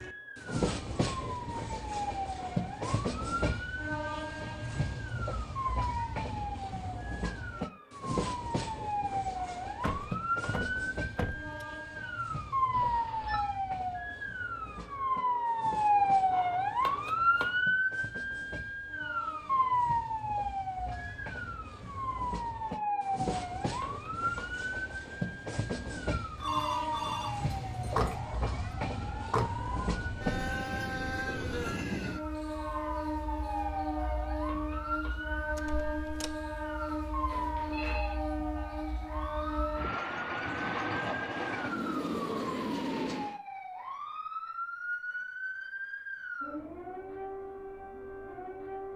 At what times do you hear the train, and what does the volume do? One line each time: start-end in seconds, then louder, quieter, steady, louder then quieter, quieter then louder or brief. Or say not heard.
0.0-43.4 quieter then louder.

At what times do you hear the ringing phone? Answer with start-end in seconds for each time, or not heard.
12.7-13.4, 26.4-28.1, 36.9-38.1.